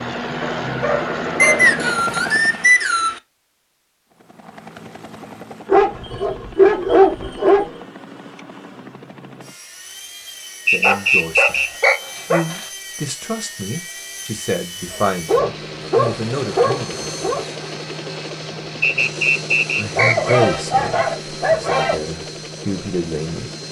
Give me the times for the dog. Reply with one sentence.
You can hear the dog from 0.4 to 1.7 s, from 5.7 to 7.8 s, from 10.8 to 12.7 s, from 14.9 to 17.4 s and from 19.9 to 21.9 s.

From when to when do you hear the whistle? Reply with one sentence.
The whistle can be heard from 1.4 to 3.2 s, from 10.7 to 12.0 s and from 18.8 to 20.4 s.